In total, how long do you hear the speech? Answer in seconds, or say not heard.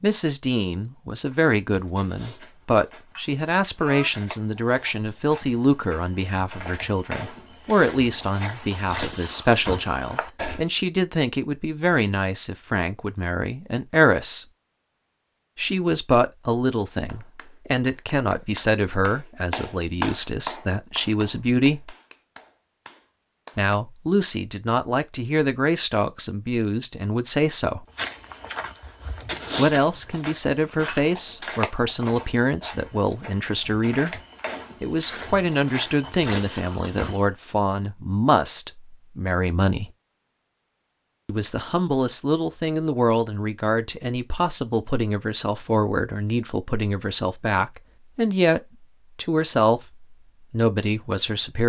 45 s.